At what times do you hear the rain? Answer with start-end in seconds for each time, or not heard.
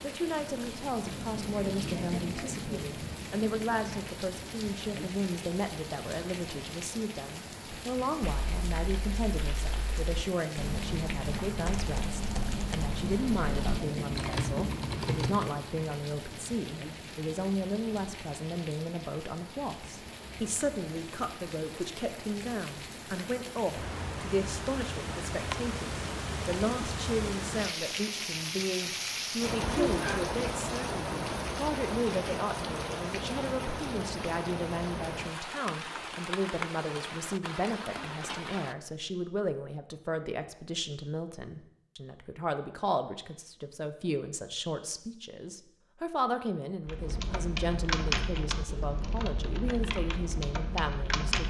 0.0-38.8.